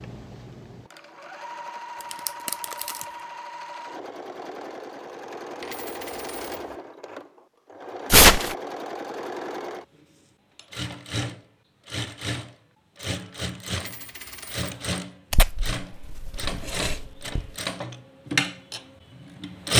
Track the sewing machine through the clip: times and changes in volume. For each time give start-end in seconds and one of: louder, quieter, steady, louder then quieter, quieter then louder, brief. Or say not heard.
0.0-19.7 louder.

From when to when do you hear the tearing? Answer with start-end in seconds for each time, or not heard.
2.1-3.0, 8.1-8.6, 15.3-17.4.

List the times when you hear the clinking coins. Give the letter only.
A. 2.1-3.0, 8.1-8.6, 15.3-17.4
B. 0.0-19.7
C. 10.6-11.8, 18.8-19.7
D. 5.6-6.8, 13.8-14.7
D.